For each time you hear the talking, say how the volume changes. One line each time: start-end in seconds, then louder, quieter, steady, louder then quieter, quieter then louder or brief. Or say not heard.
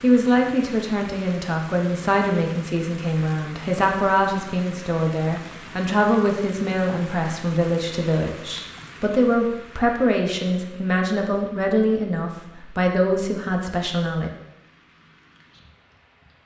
0.0-14.3 steady.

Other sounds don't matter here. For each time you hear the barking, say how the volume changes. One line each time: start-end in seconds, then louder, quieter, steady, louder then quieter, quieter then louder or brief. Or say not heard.
not heard.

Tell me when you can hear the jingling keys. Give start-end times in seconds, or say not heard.
not heard.